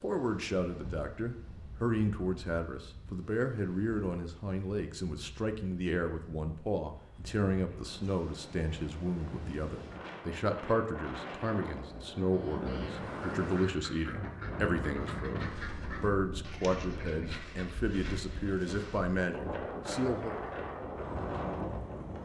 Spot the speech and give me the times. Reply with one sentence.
The speech can be heard from 0.0 to 20.4 s.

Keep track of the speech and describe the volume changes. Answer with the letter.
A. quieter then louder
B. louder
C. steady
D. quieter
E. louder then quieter
C.